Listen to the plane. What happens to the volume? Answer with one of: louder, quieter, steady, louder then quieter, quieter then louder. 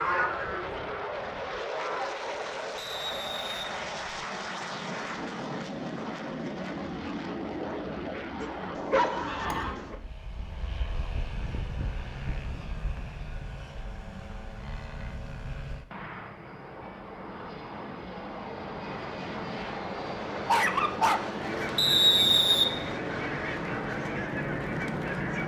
quieter then louder.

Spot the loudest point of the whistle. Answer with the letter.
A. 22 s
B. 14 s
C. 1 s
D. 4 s
A.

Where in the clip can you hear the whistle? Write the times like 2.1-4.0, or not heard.
2.8-4.2, 21.8-22.7.